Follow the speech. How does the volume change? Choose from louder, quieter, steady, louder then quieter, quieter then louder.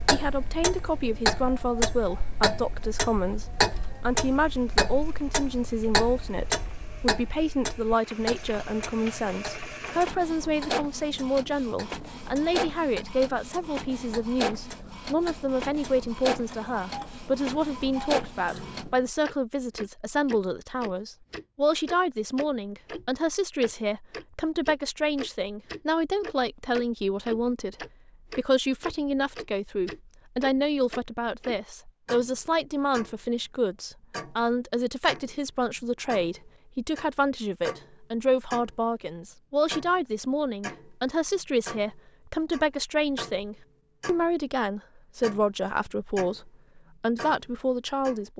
steady.